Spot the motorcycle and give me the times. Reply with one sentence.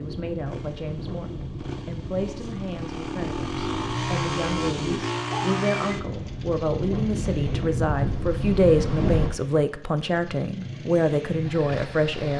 The motorcycle can be heard from 0.0 to 12.3 s.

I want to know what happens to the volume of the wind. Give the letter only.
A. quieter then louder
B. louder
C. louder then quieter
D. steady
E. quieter
B.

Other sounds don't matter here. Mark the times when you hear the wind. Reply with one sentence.
You can hear the wind from 0.0 to 9.3 s.